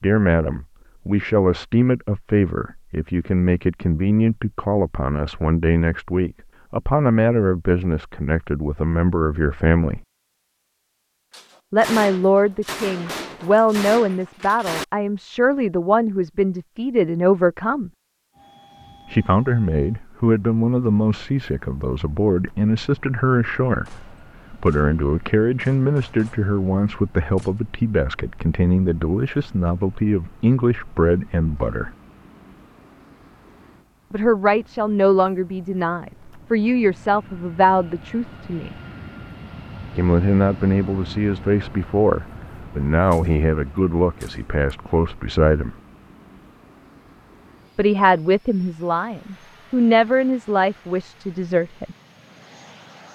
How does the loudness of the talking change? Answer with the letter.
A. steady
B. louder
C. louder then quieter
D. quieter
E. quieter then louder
A.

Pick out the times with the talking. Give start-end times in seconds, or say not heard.
0.0-10.0, 11.7-17.9, 19.1-31.9, 34.1-38.8, 40.0-45.8, 47.8-52.0.